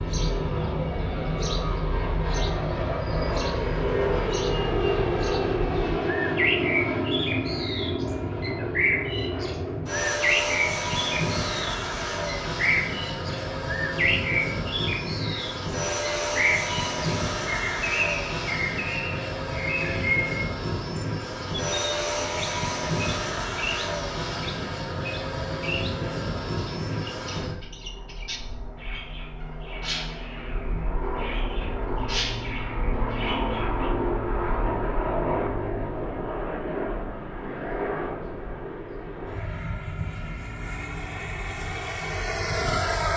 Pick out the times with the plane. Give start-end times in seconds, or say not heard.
0.0-43.1.